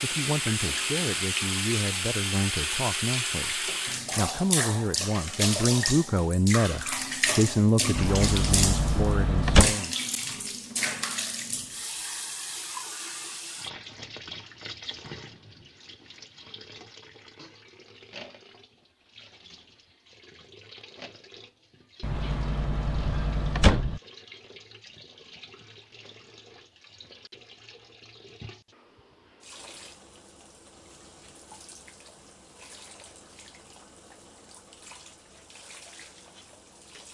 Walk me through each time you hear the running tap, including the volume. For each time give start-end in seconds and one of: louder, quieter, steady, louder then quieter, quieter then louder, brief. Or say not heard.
0.0-37.0 quieter.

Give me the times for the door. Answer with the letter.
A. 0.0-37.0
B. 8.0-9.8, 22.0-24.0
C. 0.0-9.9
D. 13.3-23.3
B.